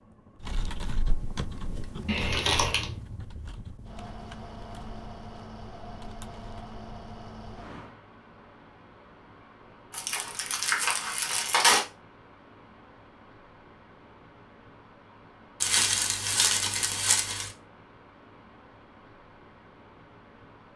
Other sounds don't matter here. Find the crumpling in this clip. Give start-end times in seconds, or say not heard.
2.0-2.9, 9.9-11.8, 15.6-17.5.